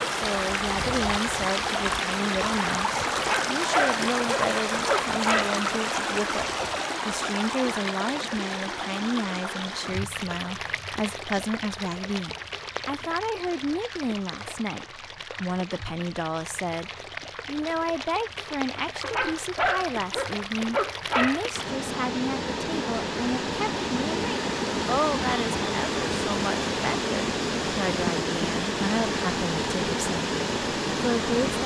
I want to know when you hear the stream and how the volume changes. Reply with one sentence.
The stream can be heard from 0.0 to 31.6 s, getting quieter then louder.